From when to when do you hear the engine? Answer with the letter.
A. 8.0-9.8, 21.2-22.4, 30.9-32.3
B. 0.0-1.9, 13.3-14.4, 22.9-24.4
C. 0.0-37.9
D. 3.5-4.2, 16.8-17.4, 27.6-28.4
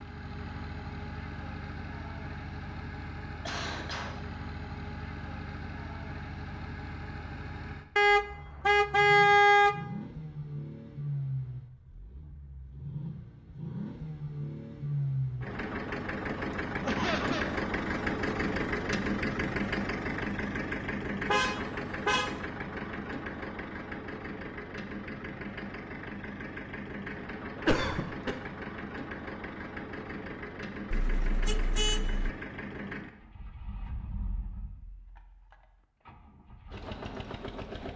C.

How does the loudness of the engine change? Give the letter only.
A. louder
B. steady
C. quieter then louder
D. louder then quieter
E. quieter
D.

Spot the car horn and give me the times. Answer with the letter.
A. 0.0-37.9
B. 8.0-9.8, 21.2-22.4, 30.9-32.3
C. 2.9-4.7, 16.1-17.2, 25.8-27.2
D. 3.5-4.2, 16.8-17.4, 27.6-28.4
B.